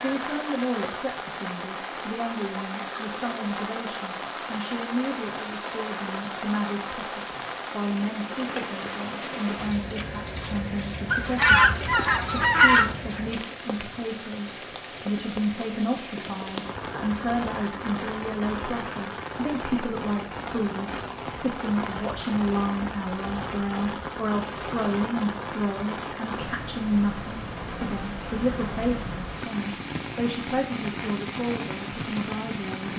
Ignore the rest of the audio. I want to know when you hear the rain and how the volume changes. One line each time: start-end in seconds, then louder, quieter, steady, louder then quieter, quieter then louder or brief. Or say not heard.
0.0-32.9 steady.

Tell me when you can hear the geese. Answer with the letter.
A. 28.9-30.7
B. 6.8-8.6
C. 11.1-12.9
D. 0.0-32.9
C.